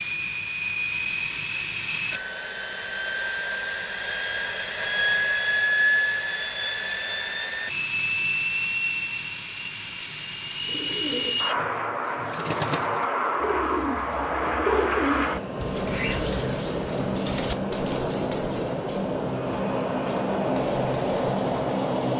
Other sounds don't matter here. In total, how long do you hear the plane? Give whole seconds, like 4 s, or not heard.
22 s.